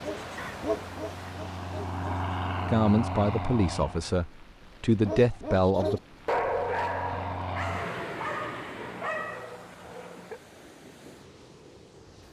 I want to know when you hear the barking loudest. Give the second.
6 s.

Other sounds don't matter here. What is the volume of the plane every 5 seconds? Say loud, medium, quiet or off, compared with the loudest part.
loud, loud, off.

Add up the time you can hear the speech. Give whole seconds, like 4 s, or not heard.
3 s.